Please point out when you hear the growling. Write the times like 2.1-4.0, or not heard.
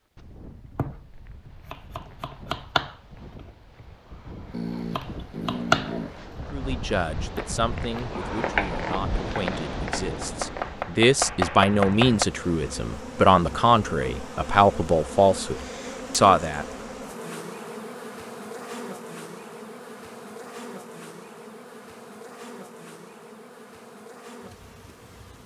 4.5-6.2.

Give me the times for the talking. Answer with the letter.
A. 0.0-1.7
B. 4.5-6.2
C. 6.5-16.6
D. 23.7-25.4
C.